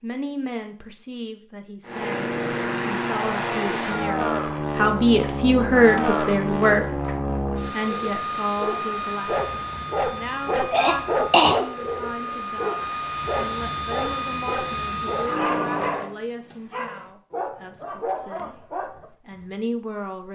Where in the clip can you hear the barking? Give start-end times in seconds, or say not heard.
7.8-19.4.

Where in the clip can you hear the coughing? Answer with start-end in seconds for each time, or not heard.
10.7-11.6.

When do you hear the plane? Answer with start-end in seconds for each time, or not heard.
1.9-16.1.